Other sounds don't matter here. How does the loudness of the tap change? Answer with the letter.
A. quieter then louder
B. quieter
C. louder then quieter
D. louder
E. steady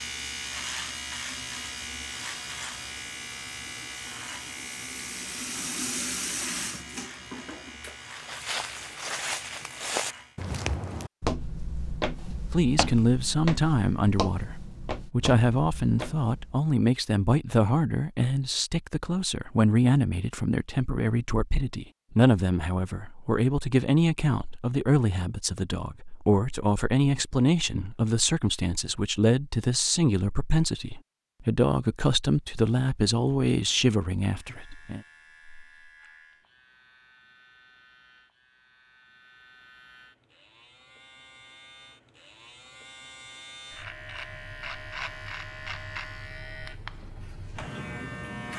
D.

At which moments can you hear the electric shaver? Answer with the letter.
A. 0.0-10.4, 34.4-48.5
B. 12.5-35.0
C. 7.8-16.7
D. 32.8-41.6
A.